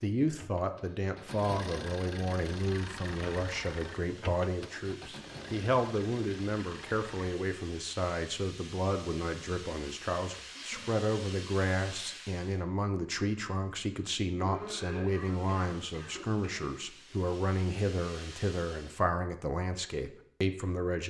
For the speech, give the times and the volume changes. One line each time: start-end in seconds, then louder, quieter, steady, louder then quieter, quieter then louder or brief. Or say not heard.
0.0-21.0 steady.